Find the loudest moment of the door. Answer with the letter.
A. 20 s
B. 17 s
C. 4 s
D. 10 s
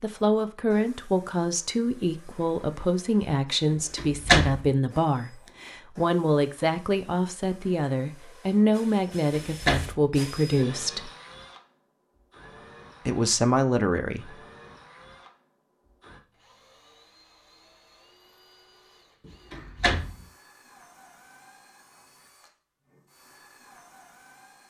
C.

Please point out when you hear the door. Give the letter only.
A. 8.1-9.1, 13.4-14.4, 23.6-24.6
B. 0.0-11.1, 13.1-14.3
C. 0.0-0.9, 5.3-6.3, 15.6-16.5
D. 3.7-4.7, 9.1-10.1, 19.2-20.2
D.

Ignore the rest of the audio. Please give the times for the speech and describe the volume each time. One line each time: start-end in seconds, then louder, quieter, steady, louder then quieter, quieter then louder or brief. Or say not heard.
0.0-11.1 steady
13.1-14.3 brief.